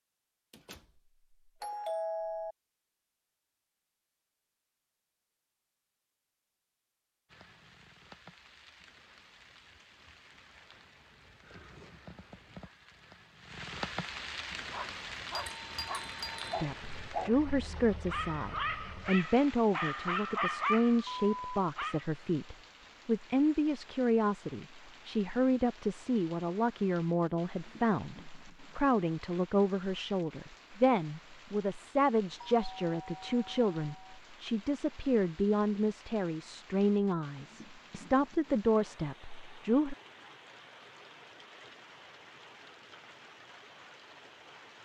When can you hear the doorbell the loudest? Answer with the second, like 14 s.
2 s.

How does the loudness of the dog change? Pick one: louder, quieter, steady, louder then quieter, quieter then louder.
louder.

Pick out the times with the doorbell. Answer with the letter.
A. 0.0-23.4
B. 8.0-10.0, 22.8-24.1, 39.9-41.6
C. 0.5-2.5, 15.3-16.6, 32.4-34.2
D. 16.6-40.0
C.